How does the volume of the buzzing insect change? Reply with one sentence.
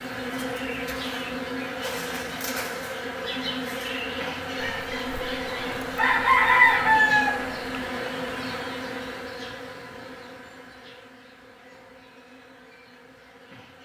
The volume of the buzzing insect goes down.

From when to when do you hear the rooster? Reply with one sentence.
The rooster can be heard from 4.6 to 7.6 s.